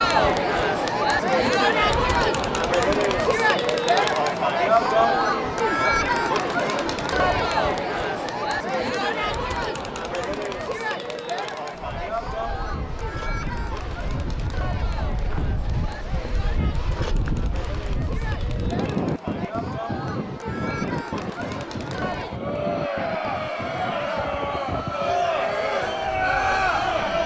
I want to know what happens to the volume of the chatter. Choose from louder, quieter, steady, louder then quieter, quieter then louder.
quieter then louder.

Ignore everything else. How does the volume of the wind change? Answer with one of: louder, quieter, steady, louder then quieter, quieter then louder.
louder then quieter.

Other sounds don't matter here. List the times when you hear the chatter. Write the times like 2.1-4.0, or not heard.
0.0-27.2.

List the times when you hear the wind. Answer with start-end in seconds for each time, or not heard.
11.7-27.2.